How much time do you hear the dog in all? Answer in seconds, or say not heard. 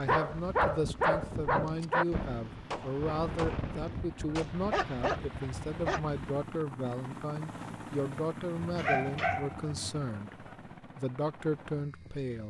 5 s.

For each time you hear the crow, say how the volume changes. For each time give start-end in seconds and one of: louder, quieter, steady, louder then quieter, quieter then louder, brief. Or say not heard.
not heard.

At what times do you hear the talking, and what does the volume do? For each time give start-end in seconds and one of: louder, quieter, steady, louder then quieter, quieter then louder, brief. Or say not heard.
0.0-12.4 steady.